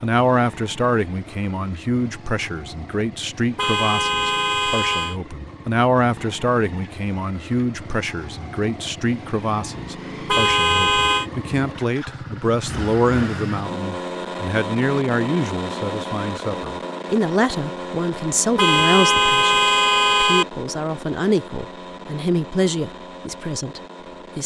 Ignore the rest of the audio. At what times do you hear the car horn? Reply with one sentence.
You can hear the car horn from 3.5 to 5.2 s, from 10.2 to 11.3 s and from 18.6 to 20.4 s.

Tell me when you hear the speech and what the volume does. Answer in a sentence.
The speech can be heard from 0.0 to 24.4 s, at a steady volume.